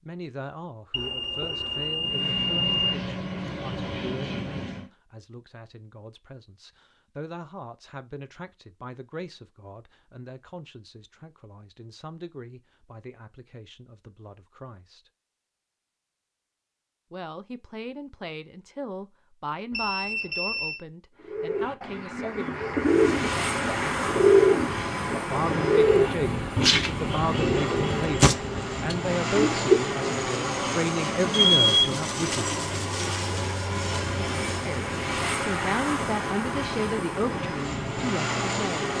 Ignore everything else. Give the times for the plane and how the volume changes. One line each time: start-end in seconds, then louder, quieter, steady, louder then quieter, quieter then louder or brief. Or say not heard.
2.0-4.9 brief
22.8-38.9 steady.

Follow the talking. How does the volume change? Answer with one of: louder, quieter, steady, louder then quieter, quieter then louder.
louder.